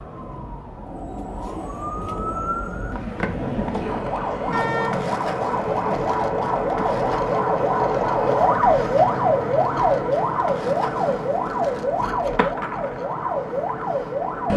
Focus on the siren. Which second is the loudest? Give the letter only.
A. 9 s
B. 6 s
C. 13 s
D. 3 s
A.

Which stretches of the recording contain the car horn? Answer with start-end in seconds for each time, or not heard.
4.5-5.2.